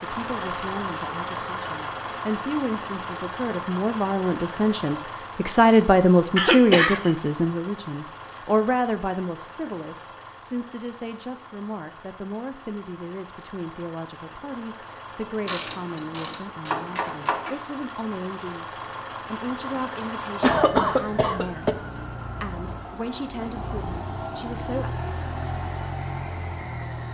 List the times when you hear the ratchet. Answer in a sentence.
The ratchet can be heard from 15.4 to 17.6 s.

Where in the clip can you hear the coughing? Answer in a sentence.
The coughing can be heard from 6.3 to 7.1 s and from 20.4 to 21.8 s.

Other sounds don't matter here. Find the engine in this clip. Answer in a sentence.
The engine can be heard from 0.0 to 27.0 s.